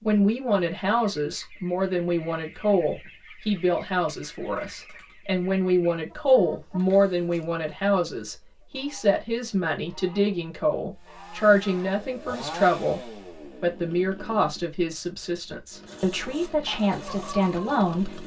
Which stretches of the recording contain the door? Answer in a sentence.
You can't hear the door here.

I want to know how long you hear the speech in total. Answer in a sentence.
The speech can be heard for 18 seconds in total.